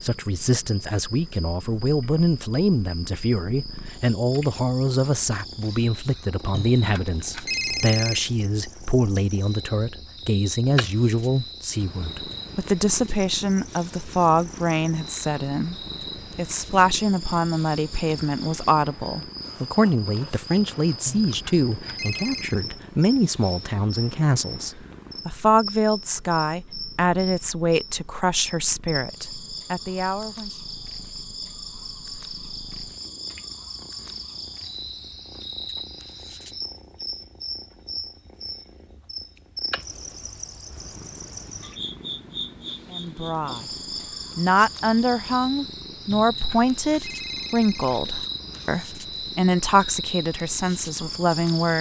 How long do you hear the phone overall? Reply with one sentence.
You can hear the phone for 5 seconds altogether.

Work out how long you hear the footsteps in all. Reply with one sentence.
The footsteps can't be heard in this clip.